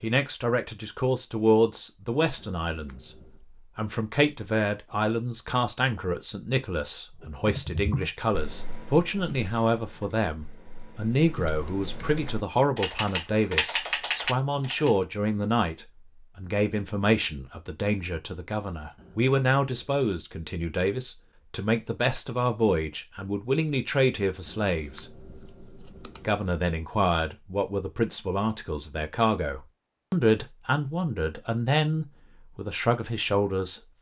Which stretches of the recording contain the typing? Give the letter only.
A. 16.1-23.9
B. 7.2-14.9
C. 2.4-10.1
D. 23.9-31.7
B.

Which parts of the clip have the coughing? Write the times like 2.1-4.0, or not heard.
not heard.